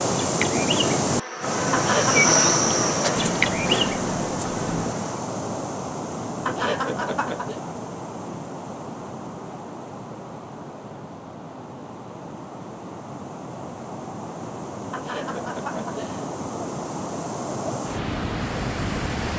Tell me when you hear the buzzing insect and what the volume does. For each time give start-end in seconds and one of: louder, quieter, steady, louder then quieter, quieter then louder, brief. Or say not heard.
0.0-5.2 louder then quieter.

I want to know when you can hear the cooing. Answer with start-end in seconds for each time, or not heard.
3.1-5.0.